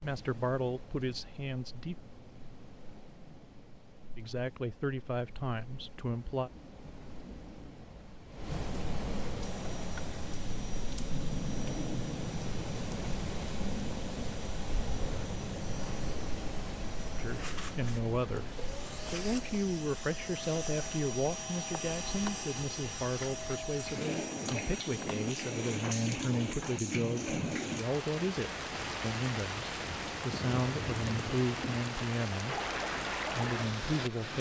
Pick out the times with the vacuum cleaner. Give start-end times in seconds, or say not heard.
9.3-25.8.